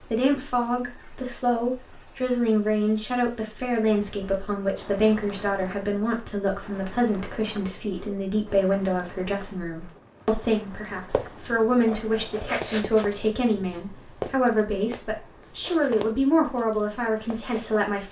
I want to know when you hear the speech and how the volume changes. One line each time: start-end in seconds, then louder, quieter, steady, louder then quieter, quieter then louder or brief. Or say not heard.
0.1-18.0 steady.